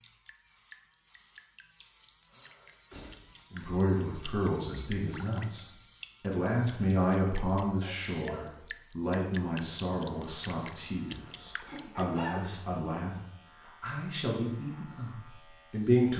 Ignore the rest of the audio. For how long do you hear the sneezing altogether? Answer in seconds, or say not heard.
3 s.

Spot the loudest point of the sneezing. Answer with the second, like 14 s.
12 s.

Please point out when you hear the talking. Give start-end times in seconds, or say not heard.
3.5-16.1.